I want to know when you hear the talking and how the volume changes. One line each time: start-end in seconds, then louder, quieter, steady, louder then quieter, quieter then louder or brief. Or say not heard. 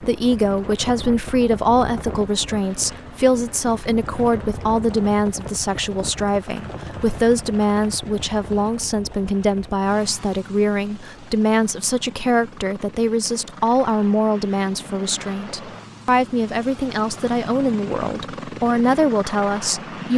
0.0-20.1 steady.